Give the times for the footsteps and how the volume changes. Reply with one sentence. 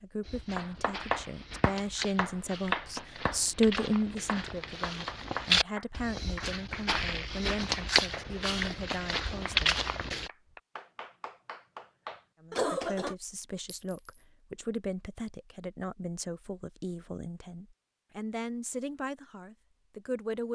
The footsteps can be heard from 0.2 to 10.3 s, getting louder.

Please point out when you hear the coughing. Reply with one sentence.
You can hear the coughing from 12.5 to 13.2 s.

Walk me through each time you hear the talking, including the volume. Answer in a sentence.
The talking can be heard from 0.0 to 9.8 s, getting louder then quieter; and from 12.4 to 20.5 s, at a steady volume.